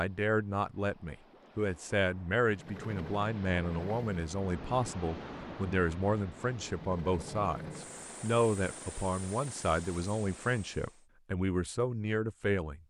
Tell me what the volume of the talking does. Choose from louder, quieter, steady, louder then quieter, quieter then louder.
steady.